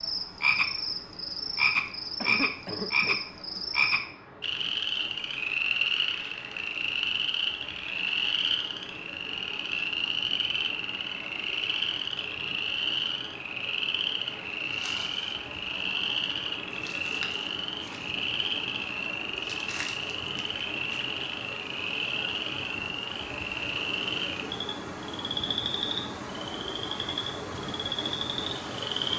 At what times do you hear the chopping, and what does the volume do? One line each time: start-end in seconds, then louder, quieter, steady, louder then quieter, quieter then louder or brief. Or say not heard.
not heard.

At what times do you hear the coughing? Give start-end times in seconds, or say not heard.
2.2-3.6.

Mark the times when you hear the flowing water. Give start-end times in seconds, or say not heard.
0.0-29.1.